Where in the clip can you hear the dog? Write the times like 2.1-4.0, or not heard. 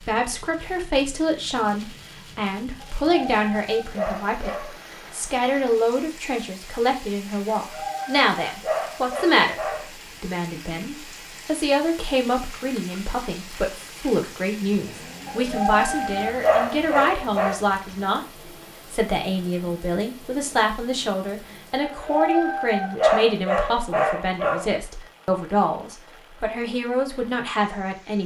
2.8-4.8, 7.6-9.8, 15.2-17.6, 21.8-24.7.